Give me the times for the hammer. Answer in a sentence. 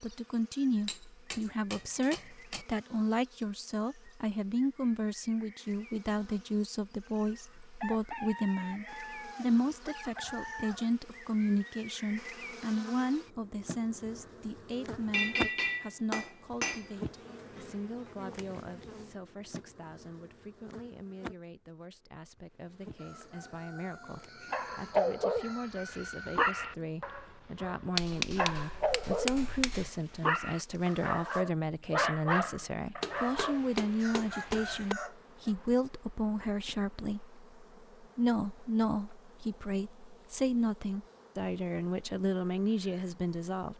The hammer can be heard from 0.8 to 2.6 s, from 15.1 to 16.9 s, from 27.9 to 29.9 s and from 33.0 to 35.0 s.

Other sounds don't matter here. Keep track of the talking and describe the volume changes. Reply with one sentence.
The loudness of the talking goes down, then up.